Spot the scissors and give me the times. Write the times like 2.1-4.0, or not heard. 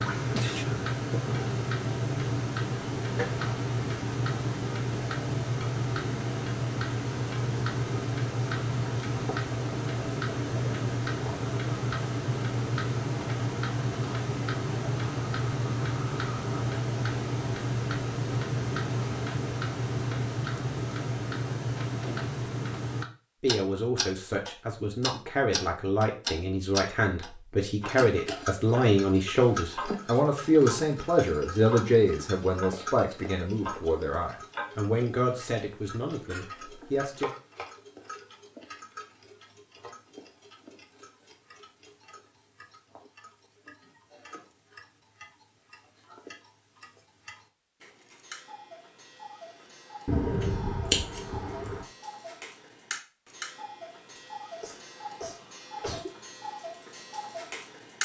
50.0-51.9.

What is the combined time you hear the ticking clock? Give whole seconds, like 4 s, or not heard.
58 s.